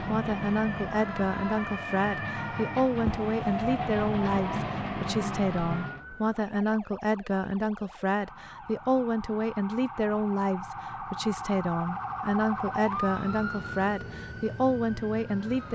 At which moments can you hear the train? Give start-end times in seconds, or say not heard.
0.0-6.0.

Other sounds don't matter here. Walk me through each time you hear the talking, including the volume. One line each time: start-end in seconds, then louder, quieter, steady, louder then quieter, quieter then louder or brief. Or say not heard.
0.0-15.7 steady.